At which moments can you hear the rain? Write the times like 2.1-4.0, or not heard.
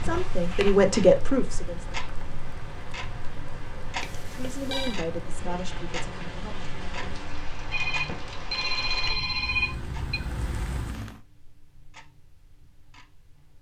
0.0-11.2.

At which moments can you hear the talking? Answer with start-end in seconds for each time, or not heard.
0.0-1.9, 4.2-6.5.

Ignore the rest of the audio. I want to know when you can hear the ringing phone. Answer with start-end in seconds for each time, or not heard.
4.0-5.0, 7.7-10.2.